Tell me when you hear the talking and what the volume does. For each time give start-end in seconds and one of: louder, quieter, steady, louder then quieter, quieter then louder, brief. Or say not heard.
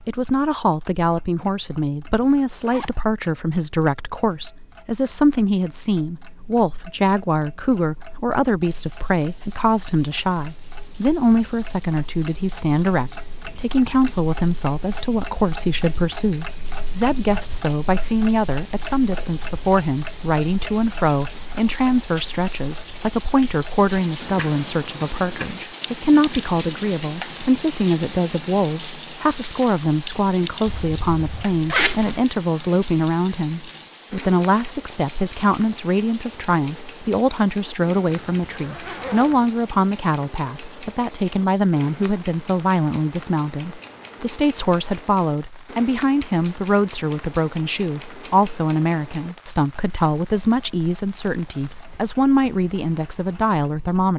0.1-54.1 steady.